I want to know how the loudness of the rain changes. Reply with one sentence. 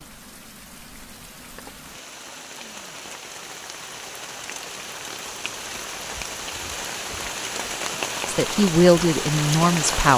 The volume of the rain goes up.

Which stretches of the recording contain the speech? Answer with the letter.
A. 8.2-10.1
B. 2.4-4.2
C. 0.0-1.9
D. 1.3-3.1
A.